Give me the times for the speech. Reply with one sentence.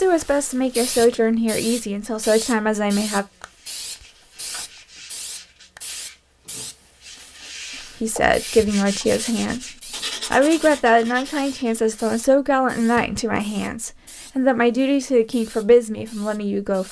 The speech can be heard from 0.0 to 3.2 s and from 8.0 to 16.8 s.